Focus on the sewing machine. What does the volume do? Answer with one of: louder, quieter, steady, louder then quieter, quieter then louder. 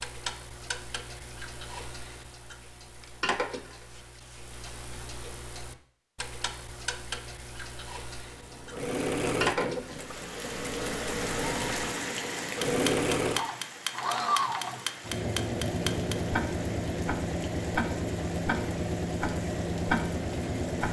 steady.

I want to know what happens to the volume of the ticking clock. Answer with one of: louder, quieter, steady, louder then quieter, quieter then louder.
louder.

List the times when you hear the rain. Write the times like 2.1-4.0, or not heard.
9.8-20.8.